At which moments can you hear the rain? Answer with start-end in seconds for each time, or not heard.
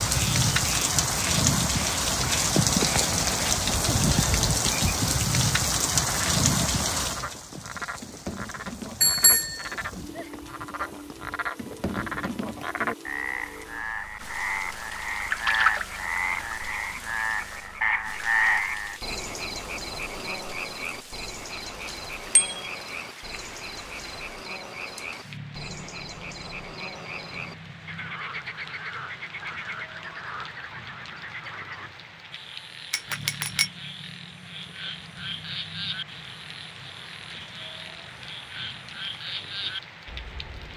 0.0-40.7.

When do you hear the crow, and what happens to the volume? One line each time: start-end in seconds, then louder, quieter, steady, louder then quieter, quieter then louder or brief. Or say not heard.
not heard.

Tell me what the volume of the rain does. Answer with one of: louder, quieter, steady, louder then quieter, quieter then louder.
quieter.